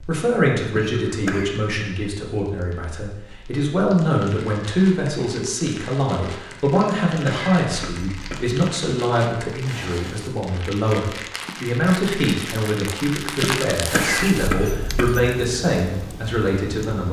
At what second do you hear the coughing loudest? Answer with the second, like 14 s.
14 s.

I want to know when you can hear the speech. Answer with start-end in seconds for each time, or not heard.
0.0-17.0.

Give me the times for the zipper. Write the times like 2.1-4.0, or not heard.
not heard.